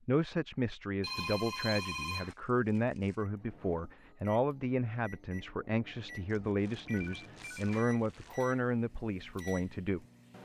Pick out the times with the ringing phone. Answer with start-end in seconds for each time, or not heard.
1.0-2.4, 6.8-8.0.